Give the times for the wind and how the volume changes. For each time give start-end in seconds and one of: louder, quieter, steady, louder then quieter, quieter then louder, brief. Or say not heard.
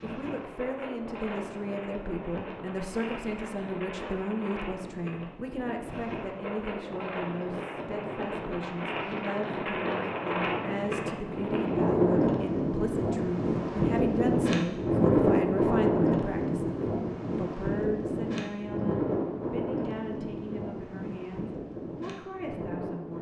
0.0-23.1 louder then quieter.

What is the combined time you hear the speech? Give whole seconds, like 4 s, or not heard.
23 s.